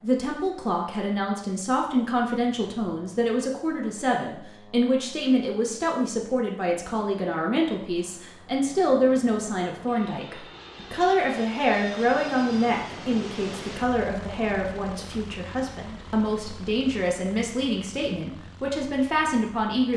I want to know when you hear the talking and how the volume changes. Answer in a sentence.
The talking can be heard from 0.0 to 19.9 s, at a steady volume.